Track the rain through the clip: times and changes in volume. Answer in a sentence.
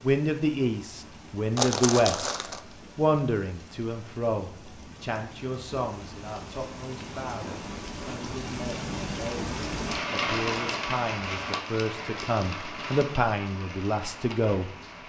You can hear the rain from 0.0 to 15.0 s, getting louder then quieter.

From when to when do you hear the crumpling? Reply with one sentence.
You can hear the crumpling from 1.6 to 2.6 s.